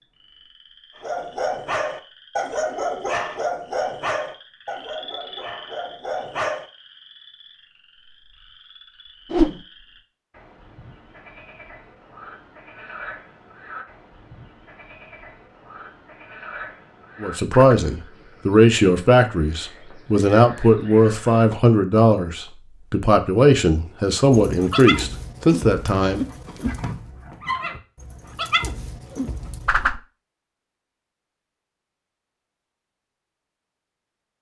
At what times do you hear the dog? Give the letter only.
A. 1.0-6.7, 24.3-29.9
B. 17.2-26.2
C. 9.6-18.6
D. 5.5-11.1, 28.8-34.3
A.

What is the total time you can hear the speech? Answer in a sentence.
You can hear the speech for 9 seconds altogether.